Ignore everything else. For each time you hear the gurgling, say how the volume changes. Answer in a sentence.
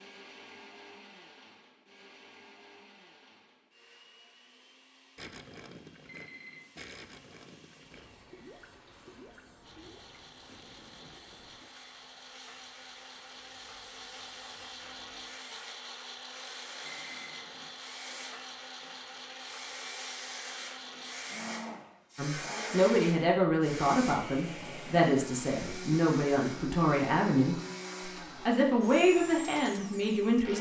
You can hear the gurgling from 5.2 to 11.8 s, getting quieter.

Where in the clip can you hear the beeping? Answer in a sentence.
You can hear the beeping from 6.0 to 6.7 s and from 16.8 to 17.8 s.